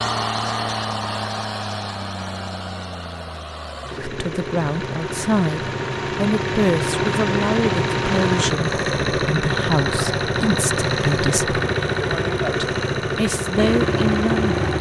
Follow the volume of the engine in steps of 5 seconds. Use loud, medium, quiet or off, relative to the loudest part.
medium, loud, loud.